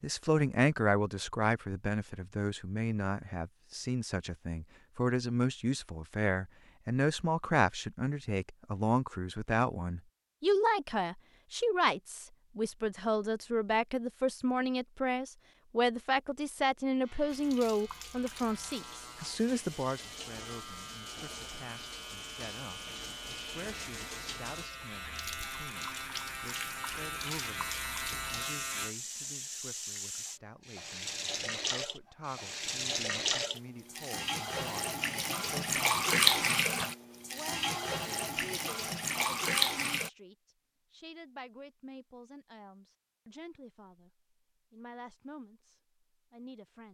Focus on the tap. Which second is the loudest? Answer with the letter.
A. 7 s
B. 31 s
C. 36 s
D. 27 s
C.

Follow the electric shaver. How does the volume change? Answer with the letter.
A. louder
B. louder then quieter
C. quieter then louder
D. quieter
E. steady
A.